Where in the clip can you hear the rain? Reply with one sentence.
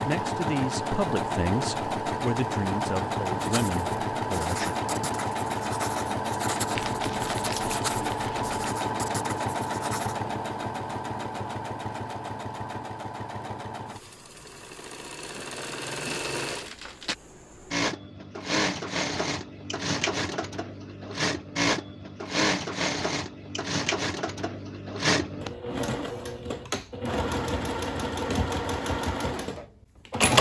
The rain can't be heard in this clip.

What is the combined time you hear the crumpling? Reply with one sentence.
The crumpling can be heard for 3 seconds in total.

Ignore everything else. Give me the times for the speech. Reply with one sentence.
The speech can be heard from 0.0 to 4.8 s.